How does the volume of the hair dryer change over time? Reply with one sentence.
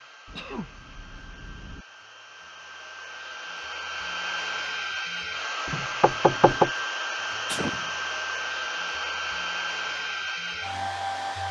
The volume of the hair dryer goes up.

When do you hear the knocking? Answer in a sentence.
You can hear the knocking from 5.7 to 6.7 s.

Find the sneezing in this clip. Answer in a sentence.
You can hear the sneezing from 0.2 to 1.9 s and from 7.5 to 7.9 s.